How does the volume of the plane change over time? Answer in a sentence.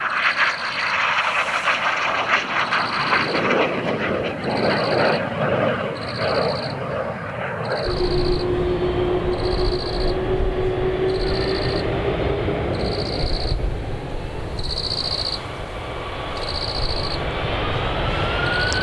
The volume of the plane goes down.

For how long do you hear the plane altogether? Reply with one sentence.
You can hear the plane for 19 seconds altogether.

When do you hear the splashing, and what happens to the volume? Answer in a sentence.
You can't hear the splashing here.